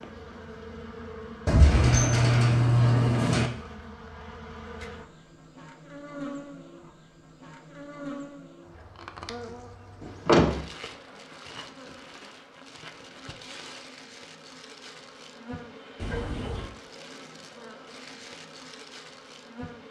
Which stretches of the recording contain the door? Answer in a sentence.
You can hear the door from 1.4 to 3.5 s, from 10.0 to 10.7 s and from 15.9 to 16.7 s.